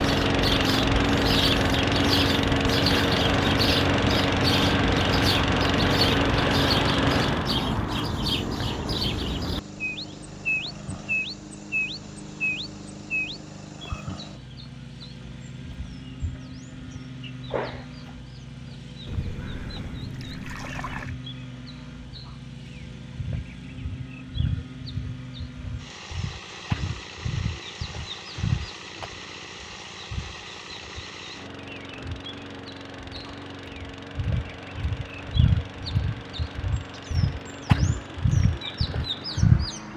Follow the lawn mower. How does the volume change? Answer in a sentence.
The loudness of the lawn mower goes down.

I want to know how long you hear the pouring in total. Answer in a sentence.
You can hear the pouring for 2 seconds altogether.